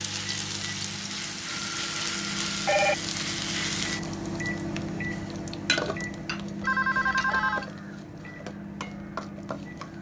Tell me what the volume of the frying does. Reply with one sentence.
The volume of the frying goes down.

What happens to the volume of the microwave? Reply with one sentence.
The loudness of the microwave goes up, then down.